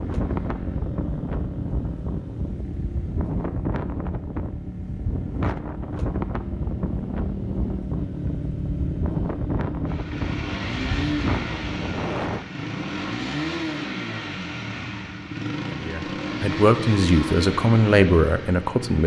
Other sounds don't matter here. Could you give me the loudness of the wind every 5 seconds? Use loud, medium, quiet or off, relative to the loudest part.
loud, loud, loud, off.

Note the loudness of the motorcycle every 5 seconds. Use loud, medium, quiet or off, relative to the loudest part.
medium, loud, loud, loud.